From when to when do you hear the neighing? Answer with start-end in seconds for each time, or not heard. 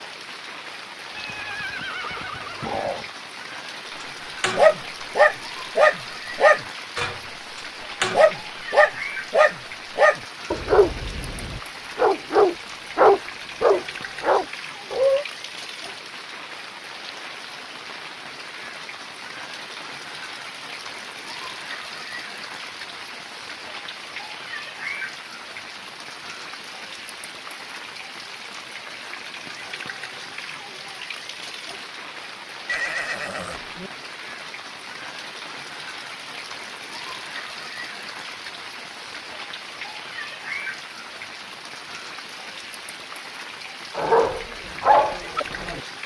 1.1-3.1, 32.6-33.9.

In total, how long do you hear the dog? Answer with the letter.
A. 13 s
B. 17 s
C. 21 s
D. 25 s
A.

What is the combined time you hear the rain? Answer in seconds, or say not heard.
46 s.